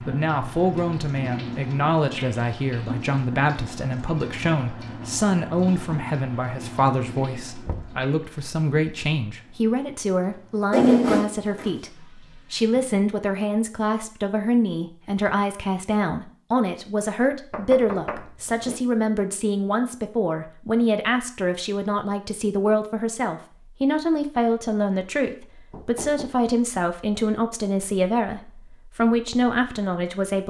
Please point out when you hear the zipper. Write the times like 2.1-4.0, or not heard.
10.7-11.8.